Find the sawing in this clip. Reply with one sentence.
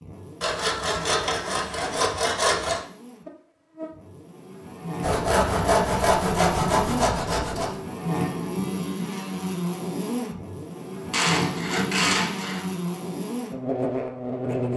You can hear the sawing from 0.4 to 2.8 s, from 5.0 to 7.8 s and from 11.1 to 12.6 s.